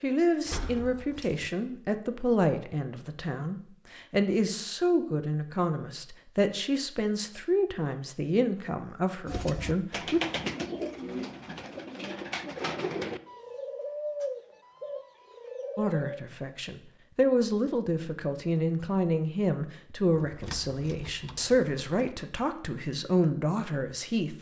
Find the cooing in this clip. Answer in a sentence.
You can hear the cooing from 9.2 to 16.2 s.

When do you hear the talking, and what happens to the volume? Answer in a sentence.
The talking can be heard from 0.0 to 10.2 s, at a steady volume; and from 15.8 to 24.3 s, at a steady volume.